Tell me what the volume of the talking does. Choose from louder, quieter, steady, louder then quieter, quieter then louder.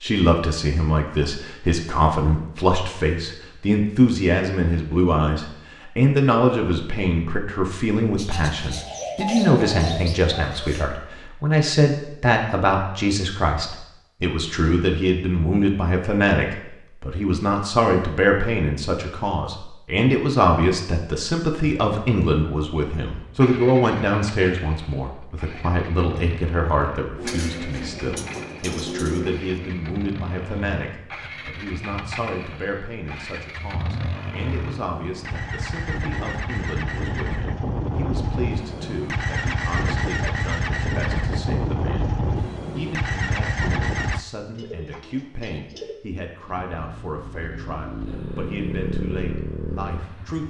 quieter.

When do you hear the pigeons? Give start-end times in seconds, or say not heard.
8.2-10.9, 27.1-29.8, 44.5-46.0.